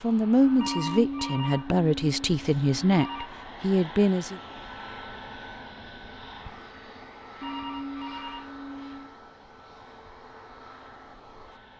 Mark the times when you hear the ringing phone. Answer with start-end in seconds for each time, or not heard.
0.6-3.3, 7.4-9.2.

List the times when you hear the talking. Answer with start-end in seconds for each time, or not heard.
0.0-4.4.